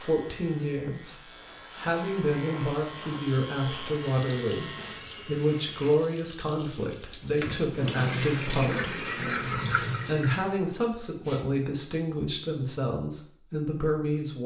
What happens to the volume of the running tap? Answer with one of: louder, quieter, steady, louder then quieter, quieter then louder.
louder.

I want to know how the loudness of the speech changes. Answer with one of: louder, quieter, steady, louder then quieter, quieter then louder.
steady.